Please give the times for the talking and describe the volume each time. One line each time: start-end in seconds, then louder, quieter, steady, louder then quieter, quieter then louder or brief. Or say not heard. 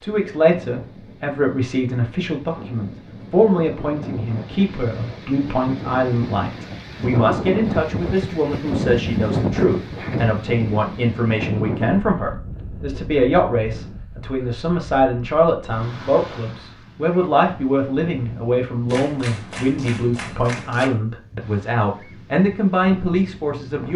0.0-23.9 steady.